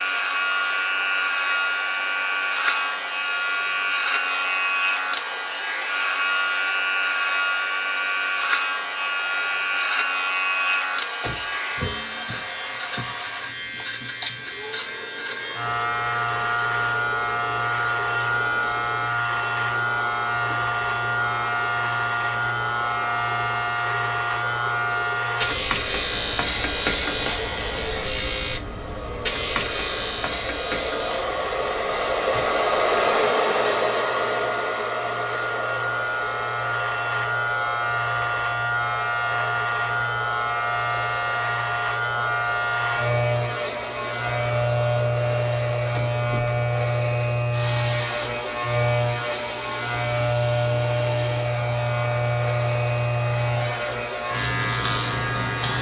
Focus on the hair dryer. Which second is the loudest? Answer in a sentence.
The volume of the hair dryer peaks at 33 seconds.